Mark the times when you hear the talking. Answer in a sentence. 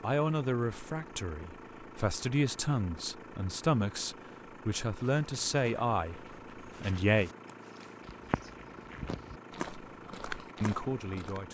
The talking can be heard from 0.0 to 7.3 s and from 10.6 to 11.4 s.